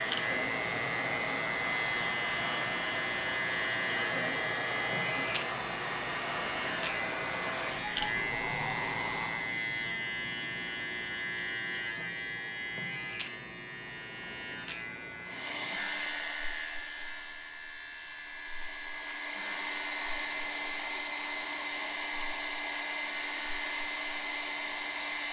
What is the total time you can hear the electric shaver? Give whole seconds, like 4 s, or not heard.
25 s.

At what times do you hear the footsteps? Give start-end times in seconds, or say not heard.
not heard.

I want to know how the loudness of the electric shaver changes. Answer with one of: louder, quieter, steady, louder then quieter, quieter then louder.
quieter.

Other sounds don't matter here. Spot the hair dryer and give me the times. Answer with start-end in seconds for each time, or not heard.
0.0-9.6, 15.2-25.2.